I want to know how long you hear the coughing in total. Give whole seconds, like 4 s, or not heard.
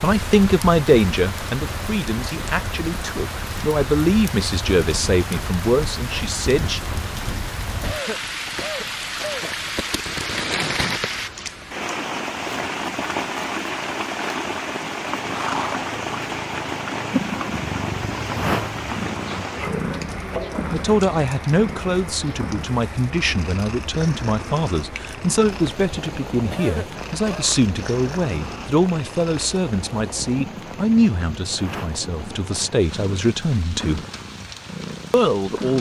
3 s.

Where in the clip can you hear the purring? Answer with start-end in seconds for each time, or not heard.
14.9-35.7.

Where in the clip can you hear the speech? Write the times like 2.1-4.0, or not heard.
0.0-6.8, 20.7-34.0, 35.1-35.7.